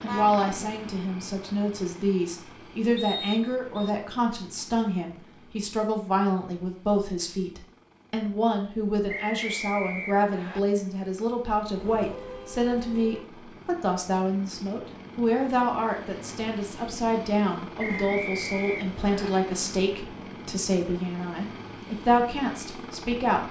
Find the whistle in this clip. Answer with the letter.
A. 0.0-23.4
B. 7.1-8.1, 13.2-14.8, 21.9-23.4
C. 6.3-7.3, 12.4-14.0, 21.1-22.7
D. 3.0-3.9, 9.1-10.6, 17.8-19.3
D.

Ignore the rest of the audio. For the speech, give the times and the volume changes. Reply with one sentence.
The speech can be heard from 0.0 to 23.4 s, at a steady volume.